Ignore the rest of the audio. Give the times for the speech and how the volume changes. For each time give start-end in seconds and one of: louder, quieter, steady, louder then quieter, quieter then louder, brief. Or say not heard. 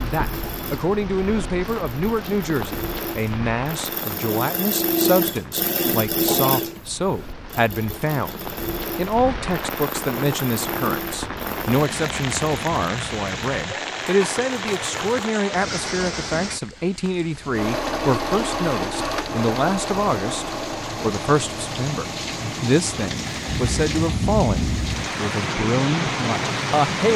0.0-27.1 steady.